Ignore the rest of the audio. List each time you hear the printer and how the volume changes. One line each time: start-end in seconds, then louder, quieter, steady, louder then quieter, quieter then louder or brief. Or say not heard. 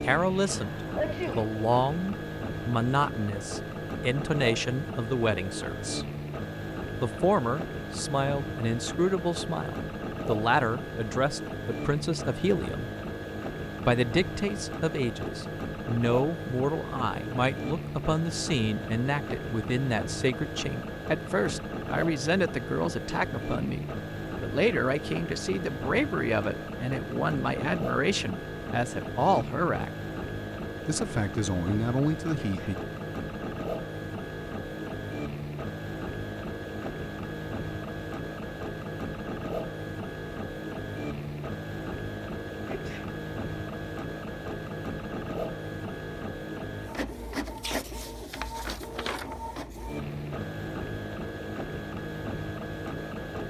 0.0-53.4 steady.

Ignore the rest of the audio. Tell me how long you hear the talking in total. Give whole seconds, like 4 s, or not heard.
30 s.